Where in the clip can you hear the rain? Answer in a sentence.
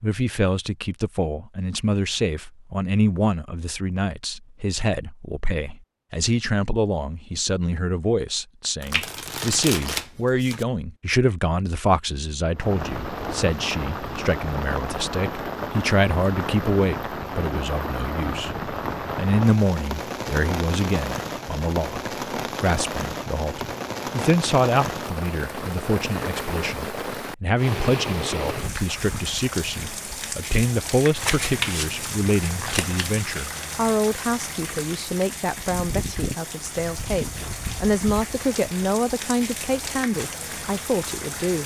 You can hear the rain from 12.6 to 41.6 s.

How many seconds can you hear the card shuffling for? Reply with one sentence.
The card shuffling can be heard for 4 seconds in total.